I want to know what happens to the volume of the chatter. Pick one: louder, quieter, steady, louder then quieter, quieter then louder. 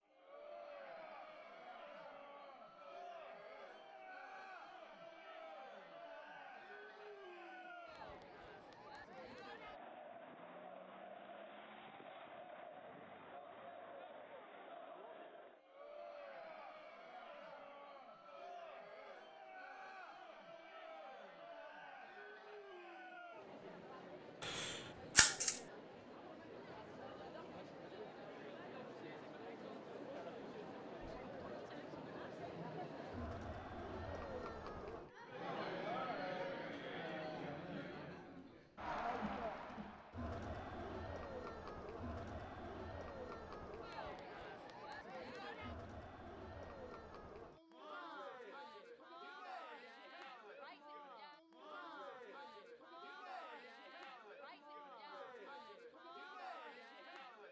louder then quieter.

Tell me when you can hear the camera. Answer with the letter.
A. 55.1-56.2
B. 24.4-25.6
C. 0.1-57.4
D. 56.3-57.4
B.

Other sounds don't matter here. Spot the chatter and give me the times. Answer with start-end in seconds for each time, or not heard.
0.1-57.4.